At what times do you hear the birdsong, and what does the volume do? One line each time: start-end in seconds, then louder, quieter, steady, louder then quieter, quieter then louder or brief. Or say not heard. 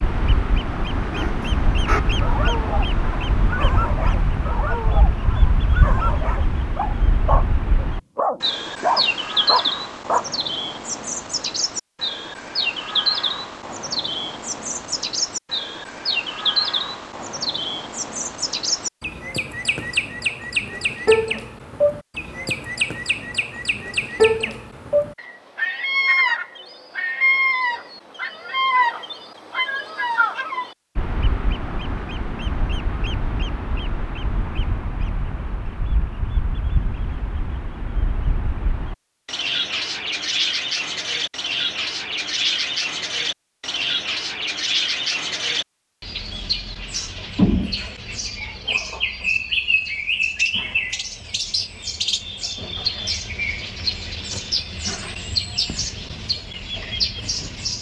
0.0-57.7 steady.